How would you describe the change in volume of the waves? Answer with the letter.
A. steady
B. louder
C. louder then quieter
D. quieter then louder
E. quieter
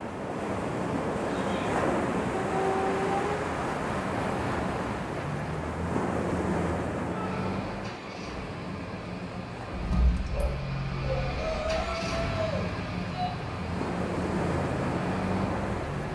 D.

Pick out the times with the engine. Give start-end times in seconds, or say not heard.
7.2-16.1.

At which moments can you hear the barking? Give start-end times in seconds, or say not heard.
2.4-3.3, 9.7-11.9.